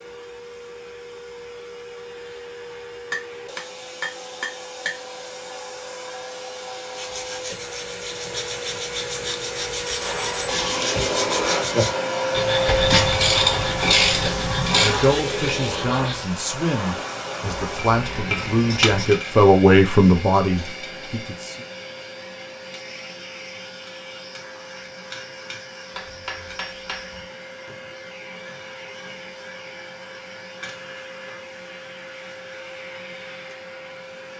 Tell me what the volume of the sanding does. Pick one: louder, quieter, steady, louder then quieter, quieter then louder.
louder then quieter.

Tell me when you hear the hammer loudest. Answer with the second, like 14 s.
19 s.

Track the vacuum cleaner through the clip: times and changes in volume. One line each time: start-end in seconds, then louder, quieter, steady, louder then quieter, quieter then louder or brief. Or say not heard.
0.0-34.3 louder then quieter.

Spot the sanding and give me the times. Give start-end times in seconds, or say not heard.
7.0-16.2.